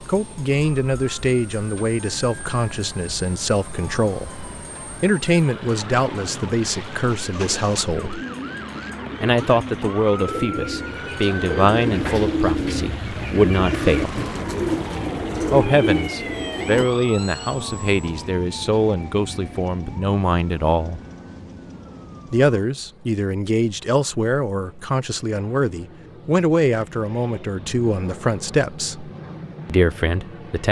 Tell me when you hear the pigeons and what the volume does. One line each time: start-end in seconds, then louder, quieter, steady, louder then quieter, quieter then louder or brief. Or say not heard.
7.0-16.9 louder.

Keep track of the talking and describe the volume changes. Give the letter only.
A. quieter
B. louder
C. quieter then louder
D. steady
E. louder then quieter
D.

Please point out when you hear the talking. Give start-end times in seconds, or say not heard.
0.1-8.2, 9.2-14.2, 15.5-21.0, 22.3-30.6.